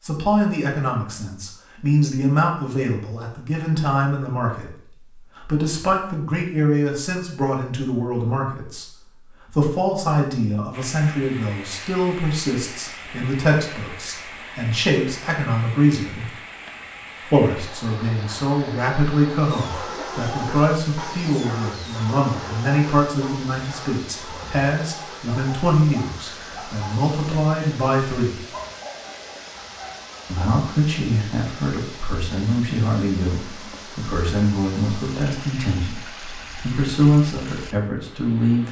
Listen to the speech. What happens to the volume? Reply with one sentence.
The volume of the speech stays about the same.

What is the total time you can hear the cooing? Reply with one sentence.
You can't hear the cooing here.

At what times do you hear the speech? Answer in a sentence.
You can hear the speech from 0.0 to 16.3 s, from 17.2 to 28.4 s and from 30.2 to 38.6 s.